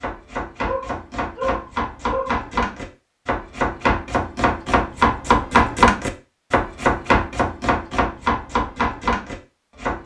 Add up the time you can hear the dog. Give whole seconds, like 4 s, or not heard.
2 s.